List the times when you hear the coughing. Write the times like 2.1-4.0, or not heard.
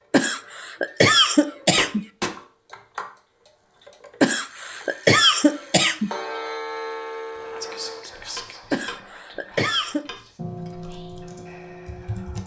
0.1-2.0, 4.2-6.1, 8.7-10.1.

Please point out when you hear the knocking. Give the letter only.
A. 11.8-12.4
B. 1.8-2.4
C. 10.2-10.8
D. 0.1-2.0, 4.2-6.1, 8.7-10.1
B.